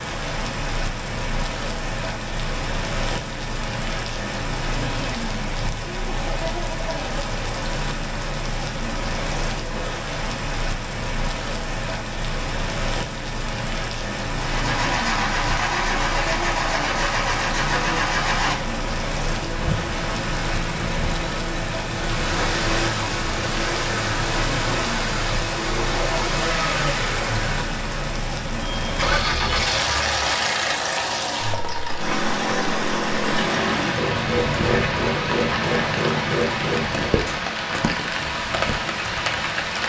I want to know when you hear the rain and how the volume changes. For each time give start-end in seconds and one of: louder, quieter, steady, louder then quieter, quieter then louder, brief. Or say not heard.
0.0-39.8 steady.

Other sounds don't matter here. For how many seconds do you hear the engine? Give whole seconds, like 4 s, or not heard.
23 s.